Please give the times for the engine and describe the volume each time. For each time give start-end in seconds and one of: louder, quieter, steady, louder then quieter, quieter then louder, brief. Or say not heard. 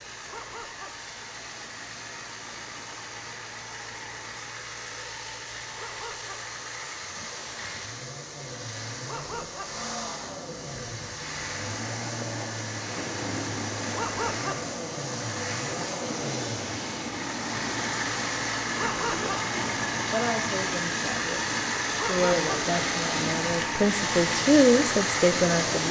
0.0-25.8 louder.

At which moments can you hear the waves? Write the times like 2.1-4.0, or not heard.
0.0-25.8.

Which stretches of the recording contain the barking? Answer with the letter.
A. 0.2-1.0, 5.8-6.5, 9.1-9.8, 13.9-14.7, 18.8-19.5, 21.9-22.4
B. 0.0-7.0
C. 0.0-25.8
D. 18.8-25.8
A.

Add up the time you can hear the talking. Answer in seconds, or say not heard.
7 s.